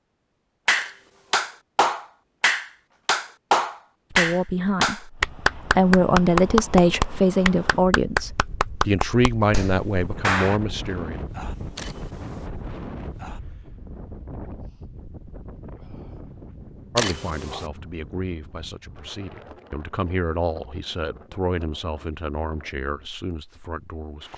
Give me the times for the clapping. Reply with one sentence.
You can hear the clapping from 0.7 to 10.6 s.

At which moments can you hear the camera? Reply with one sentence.
The camera can be heard from 0.8 to 1.5 s, from 11.8 to 12.5 s and from 16.9 to 17.7 s.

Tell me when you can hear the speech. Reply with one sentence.
You can hear the speech from 4.1 to 11.2 s and from 16.9 to 24.3 s.